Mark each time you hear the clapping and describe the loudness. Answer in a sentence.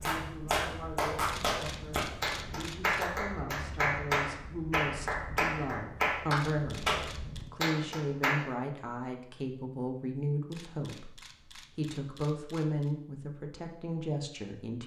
You can hear the clapping from 0.0 to 8.4 s, at a steady volume.